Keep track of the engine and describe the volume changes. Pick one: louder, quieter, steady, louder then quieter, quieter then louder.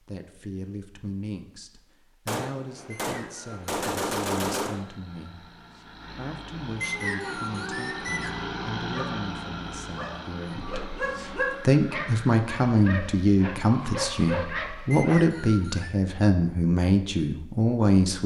louder then quieter.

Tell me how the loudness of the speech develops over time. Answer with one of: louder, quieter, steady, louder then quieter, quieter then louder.
louder.